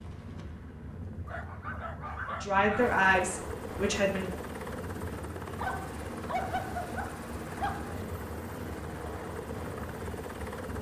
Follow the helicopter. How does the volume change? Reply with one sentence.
The volume of the helicopter goes up.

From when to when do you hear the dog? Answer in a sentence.
The dog can be heard from 1.2 to 3.0 s and from 5.6 to 8.1 s.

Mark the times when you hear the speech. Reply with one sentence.
The speech can be heard from 2.3 to 4.3 s.